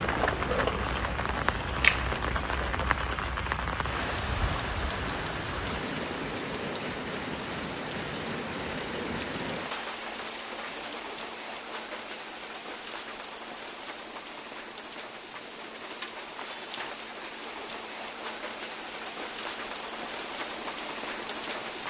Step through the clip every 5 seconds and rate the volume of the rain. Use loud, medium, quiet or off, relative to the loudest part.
loud, loud, medium, medium, loud.